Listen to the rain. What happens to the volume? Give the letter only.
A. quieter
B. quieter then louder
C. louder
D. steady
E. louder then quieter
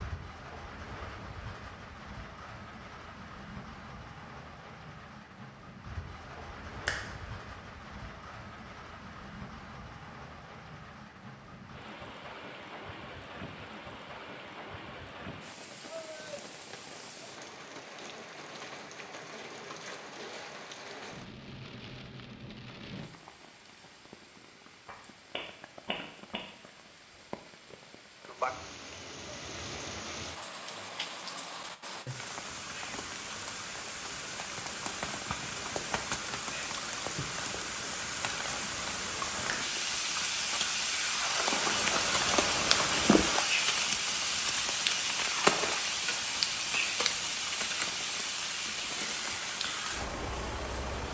C.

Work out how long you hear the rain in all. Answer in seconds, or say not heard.
51 s.